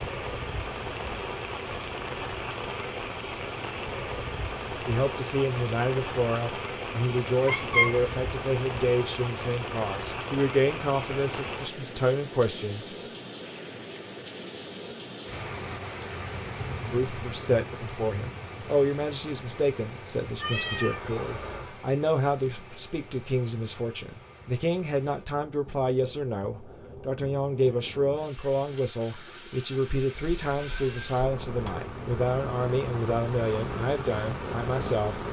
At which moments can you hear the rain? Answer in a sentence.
The rain can be heard from 0.0 to 35.2 s.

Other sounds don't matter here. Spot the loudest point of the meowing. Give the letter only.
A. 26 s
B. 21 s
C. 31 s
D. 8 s
D.